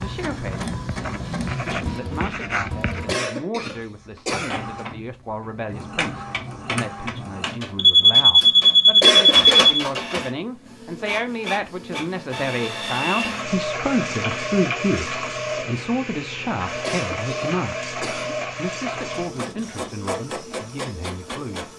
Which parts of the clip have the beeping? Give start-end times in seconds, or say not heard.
7.8-9.8.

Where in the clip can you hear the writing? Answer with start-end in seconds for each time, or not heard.
0.0-3.0.